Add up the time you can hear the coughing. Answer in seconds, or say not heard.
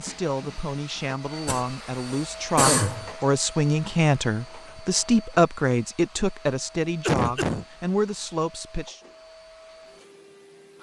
2 s.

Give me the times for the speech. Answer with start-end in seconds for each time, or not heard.
0.0-9.0.